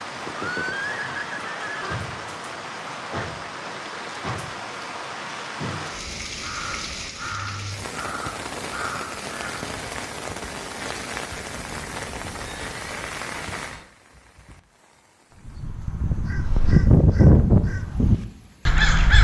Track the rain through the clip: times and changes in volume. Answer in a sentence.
The rain can be heard from 0.0 to 18.9 s, getting quieter.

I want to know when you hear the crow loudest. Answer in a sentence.
The volume of the crow peaks at 17 seconds.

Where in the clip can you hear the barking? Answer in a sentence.
The barking can't be heard in this clip.